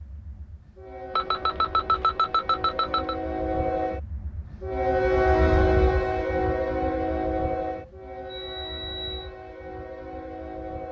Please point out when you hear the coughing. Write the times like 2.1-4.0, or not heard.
not heard.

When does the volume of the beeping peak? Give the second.
2 s.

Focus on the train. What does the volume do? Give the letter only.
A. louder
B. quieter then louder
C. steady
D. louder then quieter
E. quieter
D.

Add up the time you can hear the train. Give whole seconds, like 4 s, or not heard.
11 s.